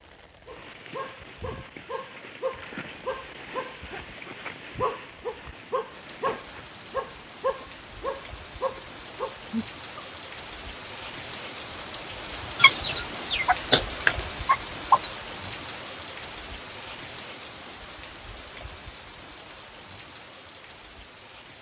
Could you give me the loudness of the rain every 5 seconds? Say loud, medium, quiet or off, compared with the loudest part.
quiet, medium, loud, loud, medium.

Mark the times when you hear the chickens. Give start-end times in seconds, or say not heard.
12.6-15.1.